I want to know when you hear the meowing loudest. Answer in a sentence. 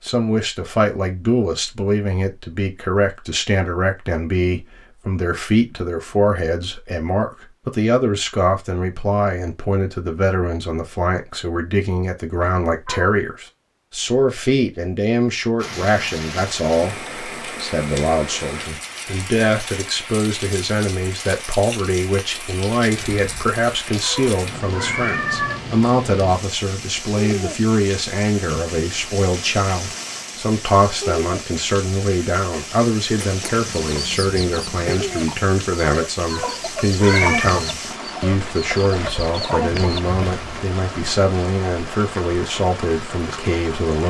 The volume of the meowing peaks at 37 seconds.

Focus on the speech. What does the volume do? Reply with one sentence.
The loudness of the speech stays about the same.